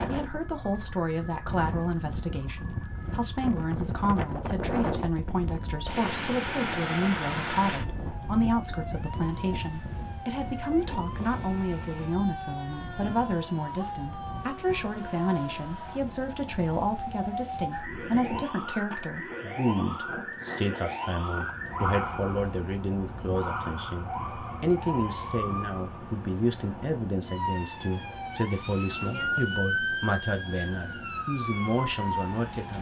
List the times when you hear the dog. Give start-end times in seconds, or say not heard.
not heard.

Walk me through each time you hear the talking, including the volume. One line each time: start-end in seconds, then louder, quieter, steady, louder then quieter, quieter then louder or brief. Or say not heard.
0.1-32.7 steady.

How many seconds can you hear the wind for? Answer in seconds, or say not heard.
33 s.